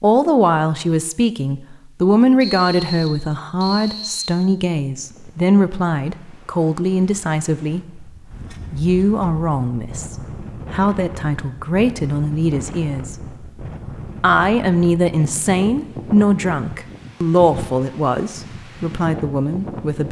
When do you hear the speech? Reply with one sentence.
You can hear the speech from 0.0 to 8.1 s, from 8.7 to 13.4 s and from 14.2 to 20.0 s.